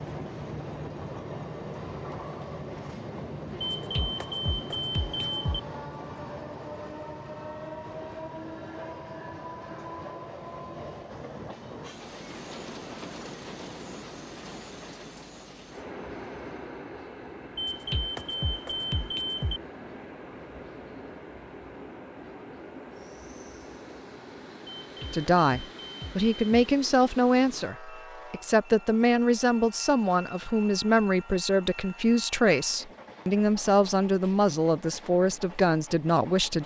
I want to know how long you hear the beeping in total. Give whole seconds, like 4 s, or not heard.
6 s.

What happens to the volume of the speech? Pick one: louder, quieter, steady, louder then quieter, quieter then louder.
steady.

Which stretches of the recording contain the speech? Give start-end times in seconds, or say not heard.
25.1-36.6.